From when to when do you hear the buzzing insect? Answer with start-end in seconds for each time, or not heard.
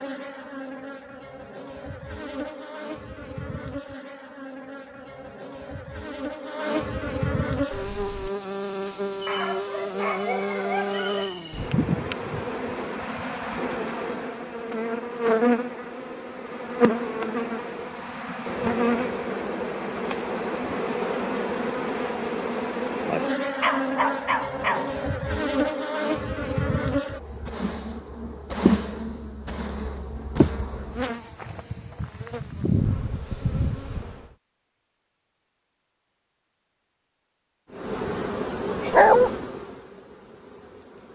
0.0-34.3, 37.7-41.0.